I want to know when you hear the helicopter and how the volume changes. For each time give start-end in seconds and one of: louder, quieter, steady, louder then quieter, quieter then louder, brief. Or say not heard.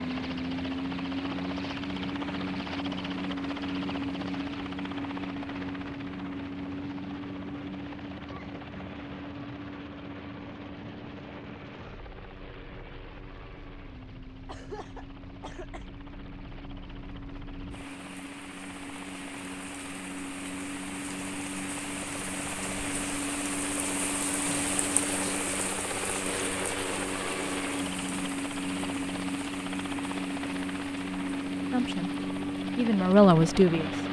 0.0-34.0 quieter then louder.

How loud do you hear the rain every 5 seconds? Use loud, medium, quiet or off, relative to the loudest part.
medium, medium, medium, medium, loud, loud, medium.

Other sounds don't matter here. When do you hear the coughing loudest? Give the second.
15 s.